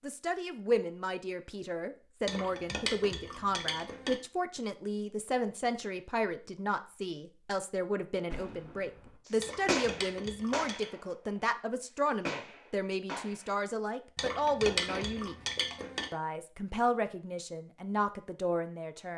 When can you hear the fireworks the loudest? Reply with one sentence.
The volume of the fireworks peaks at 10 seconds.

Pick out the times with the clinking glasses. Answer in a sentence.
The clinking glasses can be heard from 2.2 to 4.2 s, from 9.4 to 10.9 s and from 14.2 to 16.1 s.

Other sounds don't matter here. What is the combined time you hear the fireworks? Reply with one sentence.
The fireworks can be heard for 5 seconds in total.